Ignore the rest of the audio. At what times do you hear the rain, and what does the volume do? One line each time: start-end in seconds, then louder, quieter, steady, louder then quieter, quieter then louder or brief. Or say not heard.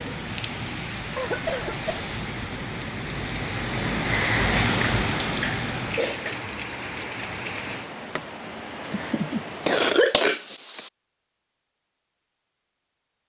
0.0-9.9 louder then quieter.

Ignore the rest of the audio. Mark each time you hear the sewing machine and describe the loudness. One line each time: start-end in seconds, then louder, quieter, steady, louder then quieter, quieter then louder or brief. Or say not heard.
not heard.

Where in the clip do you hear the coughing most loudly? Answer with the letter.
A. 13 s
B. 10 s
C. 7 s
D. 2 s
B.